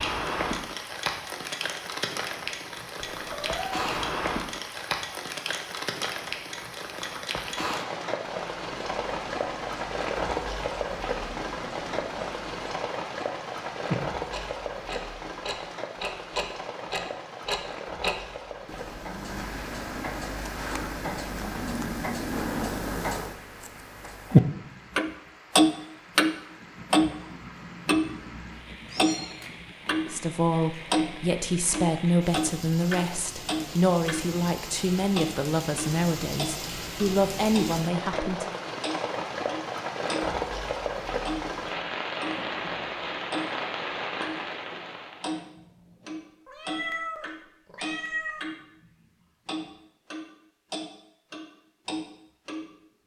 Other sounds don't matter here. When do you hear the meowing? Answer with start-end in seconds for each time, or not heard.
3.0-3.9, 28.9-29.5, 46.5-48.5.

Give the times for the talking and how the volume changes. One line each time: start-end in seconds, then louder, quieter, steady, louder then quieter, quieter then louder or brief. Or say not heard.
30.1-38.5 steady.